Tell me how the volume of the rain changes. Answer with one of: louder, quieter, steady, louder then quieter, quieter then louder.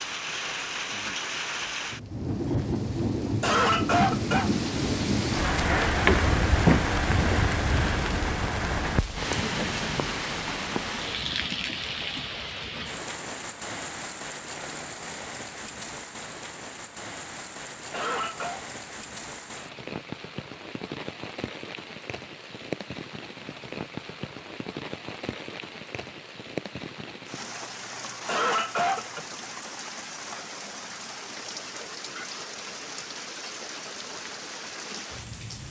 quieter.